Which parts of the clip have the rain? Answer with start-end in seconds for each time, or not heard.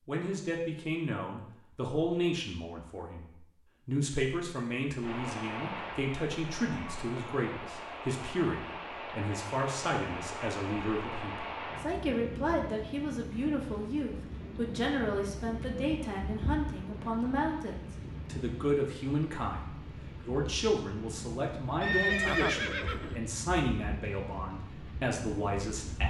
5.0-26.0.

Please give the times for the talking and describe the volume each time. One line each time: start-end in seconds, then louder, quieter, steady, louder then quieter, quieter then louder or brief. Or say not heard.
0.1-26.0 steady.